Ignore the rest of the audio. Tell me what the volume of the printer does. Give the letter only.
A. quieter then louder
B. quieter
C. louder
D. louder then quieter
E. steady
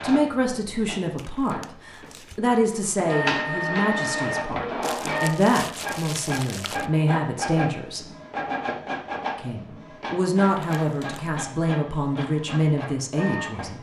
D.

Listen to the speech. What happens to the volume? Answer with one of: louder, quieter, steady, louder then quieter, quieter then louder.
steady.